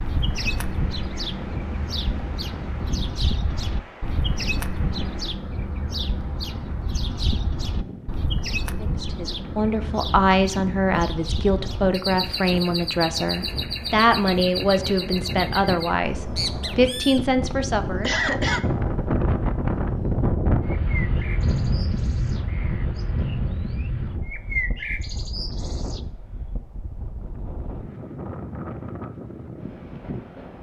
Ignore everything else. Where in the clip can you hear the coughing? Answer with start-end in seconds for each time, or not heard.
17.5-18.6.